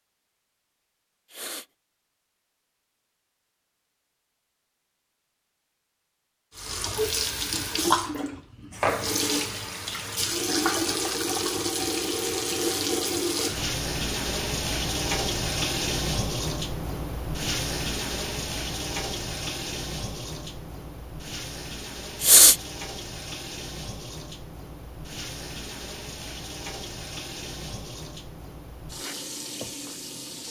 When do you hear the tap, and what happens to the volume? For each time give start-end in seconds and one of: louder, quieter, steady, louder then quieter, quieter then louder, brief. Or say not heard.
6.5-30.4 quieter.